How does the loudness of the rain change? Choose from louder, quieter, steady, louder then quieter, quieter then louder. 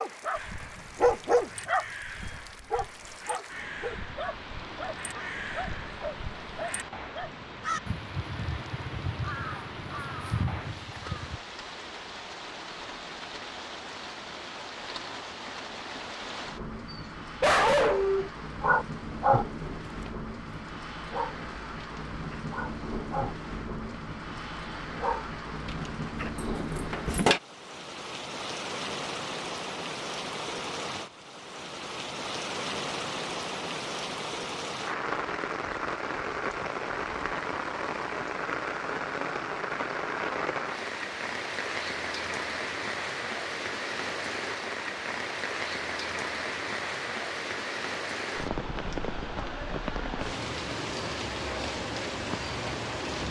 louder.